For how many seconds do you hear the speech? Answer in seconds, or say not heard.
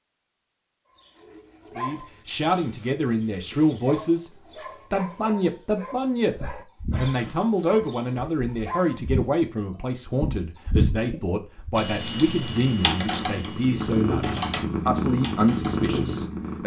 14 s.